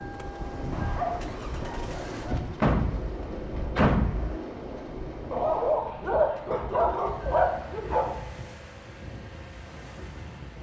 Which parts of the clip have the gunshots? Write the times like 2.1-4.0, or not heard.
2.6-4.4.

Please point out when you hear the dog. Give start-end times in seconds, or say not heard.
0.9-2.4, 5.3-8.1.